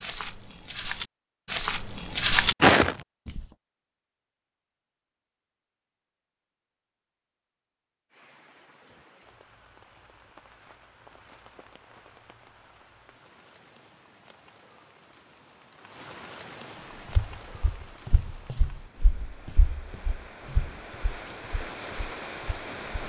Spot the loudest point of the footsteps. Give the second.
3 s.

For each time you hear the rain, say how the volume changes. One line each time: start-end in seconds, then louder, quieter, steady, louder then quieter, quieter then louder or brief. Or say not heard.
8.1-23.0 louder.